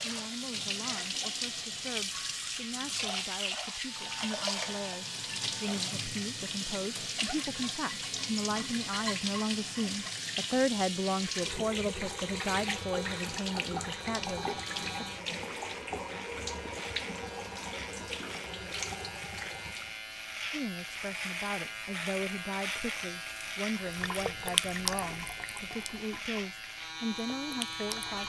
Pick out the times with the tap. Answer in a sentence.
The tap can be heard from 0.0 to 19.9 s and from 23.8 to 28.2 s.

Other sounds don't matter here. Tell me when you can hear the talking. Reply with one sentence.
The talking can be heard from 0.0 to 15.1 s and from 20.5 to 28.2 s.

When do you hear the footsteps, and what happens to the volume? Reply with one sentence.
You can't hear the footsteps here.